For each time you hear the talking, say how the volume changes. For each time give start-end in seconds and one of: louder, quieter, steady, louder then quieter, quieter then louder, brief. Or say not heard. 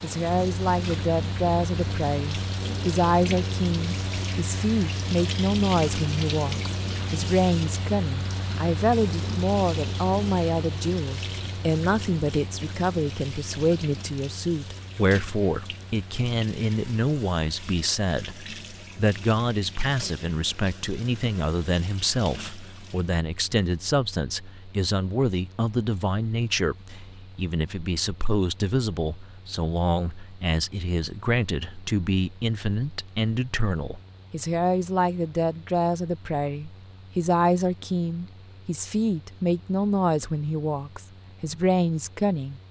0.0-42.6 steady.